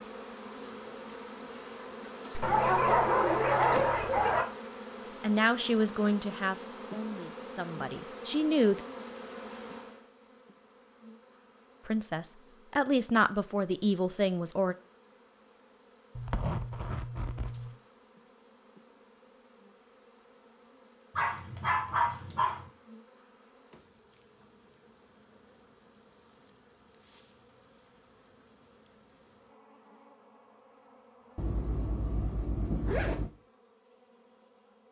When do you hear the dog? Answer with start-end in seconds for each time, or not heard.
2.4-4.5, 21.1-22.7.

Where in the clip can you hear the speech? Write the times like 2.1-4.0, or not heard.
5.2-8.8, 11.8-14.8.